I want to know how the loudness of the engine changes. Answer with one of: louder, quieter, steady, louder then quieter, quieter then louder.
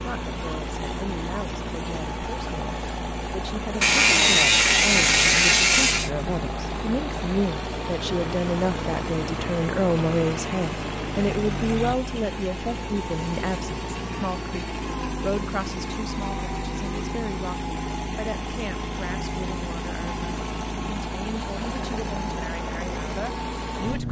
steady.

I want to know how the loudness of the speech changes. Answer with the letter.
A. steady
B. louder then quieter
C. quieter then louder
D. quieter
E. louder
B.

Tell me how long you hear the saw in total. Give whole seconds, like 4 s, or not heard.
2 s.